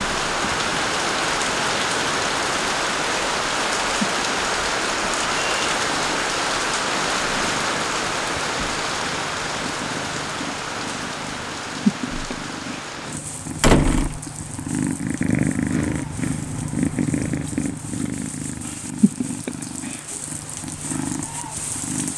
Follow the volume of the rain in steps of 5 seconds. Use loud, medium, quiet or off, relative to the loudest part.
loud, loud, medium, quiet, quiet.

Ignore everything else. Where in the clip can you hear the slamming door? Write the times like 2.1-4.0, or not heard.
13.6-14.2.